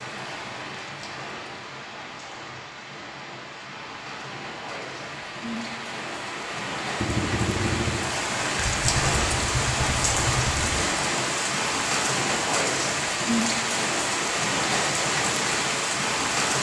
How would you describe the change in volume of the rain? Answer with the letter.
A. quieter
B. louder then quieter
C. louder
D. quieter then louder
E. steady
C.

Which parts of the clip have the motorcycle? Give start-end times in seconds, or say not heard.
7.0-10.8.